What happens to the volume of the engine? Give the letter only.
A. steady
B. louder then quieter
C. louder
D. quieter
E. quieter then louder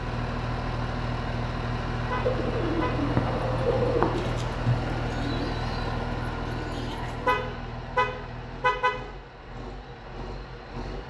D.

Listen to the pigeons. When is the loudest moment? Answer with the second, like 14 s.
4 s.